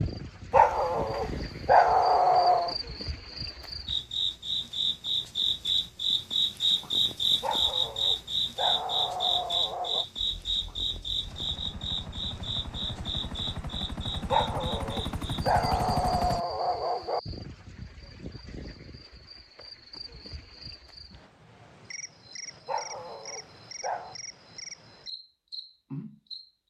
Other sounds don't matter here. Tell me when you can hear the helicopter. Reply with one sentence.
You can hear the helicopter from 10.2 to 16.4 s.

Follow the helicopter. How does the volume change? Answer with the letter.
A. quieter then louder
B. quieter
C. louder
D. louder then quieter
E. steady
C.